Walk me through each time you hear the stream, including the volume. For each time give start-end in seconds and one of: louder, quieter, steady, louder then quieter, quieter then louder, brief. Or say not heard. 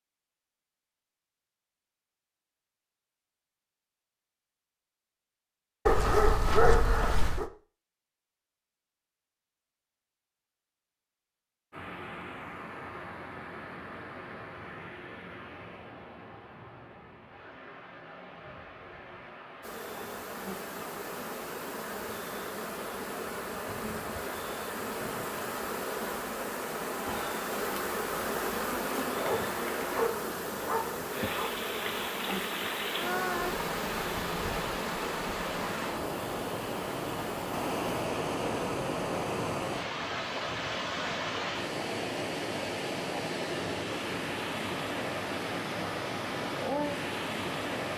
11.7-47.9 louder.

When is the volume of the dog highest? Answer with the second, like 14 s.
7 s.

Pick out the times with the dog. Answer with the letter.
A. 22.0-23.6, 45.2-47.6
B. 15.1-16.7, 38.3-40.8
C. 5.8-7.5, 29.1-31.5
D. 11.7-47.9
C.